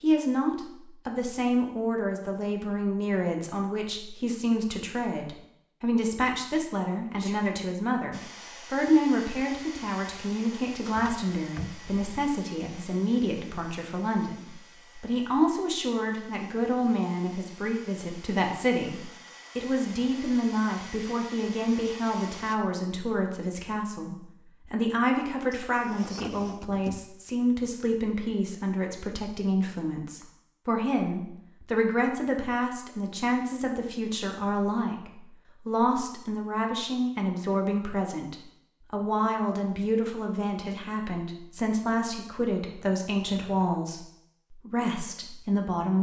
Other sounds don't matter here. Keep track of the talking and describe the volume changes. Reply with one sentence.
The loudness of the talking stays about the same.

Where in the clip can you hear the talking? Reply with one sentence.
The talking can be heard from 0.0 to 45.9 s.